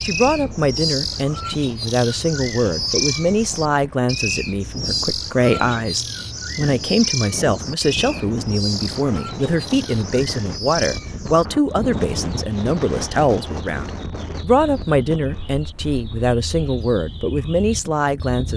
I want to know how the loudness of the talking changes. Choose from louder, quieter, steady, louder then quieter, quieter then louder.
steady.